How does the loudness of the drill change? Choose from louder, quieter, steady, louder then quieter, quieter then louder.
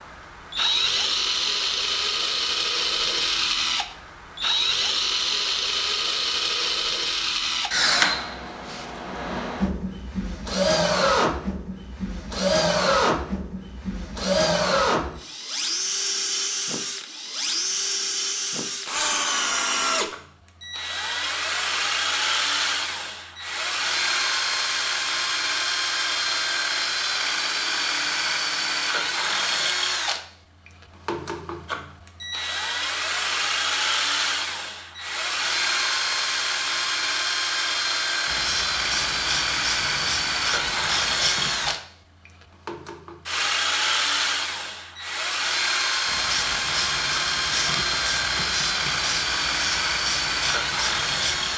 steady.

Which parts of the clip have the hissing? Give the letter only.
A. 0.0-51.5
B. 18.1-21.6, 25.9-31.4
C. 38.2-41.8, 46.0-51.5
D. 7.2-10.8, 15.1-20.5
C.